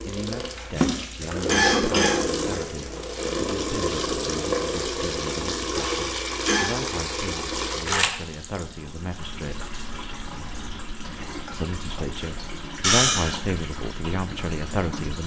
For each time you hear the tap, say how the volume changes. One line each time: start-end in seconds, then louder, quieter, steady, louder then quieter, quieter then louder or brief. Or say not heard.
0.0-15.2 quieter.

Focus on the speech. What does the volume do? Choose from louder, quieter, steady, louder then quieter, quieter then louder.
louder.